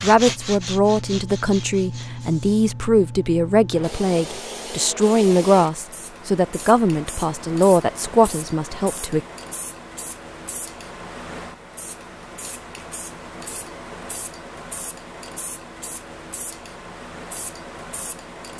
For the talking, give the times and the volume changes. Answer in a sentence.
You can hear the talking from 0.0 to 9.2 s, at a steady volume.